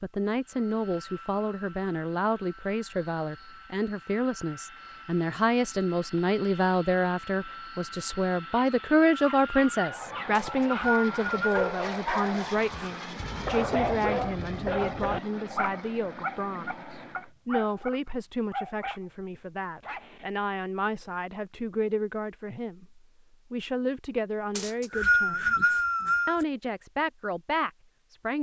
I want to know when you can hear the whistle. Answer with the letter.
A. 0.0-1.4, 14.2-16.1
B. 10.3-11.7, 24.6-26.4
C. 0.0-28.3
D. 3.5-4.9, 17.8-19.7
B.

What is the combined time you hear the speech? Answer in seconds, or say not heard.
28 s.